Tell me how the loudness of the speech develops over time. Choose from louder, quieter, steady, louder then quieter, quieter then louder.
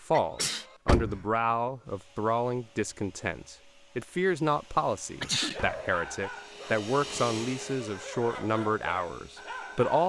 steady.